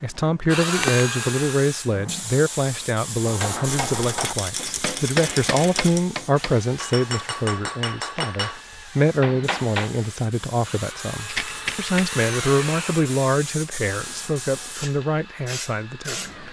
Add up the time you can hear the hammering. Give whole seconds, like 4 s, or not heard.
7 s.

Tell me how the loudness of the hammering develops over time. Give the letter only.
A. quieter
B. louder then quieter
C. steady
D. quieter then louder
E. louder
C.